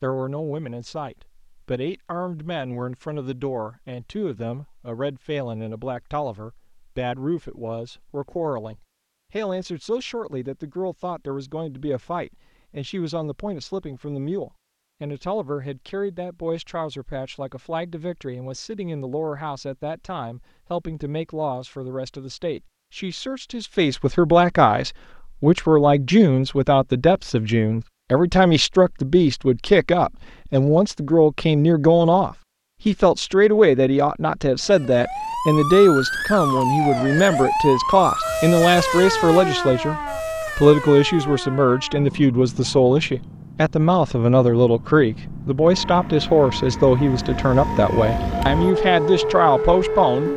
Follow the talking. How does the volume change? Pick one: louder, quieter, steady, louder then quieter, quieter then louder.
louder.